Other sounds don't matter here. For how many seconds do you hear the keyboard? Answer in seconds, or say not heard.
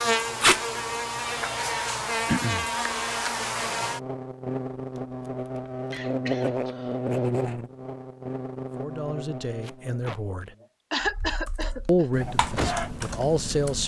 3 s.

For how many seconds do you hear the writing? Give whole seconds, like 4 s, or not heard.
not heard.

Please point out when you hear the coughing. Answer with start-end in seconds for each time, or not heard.
2.2-2.7, 5.9-7.0, 10.9-12.1.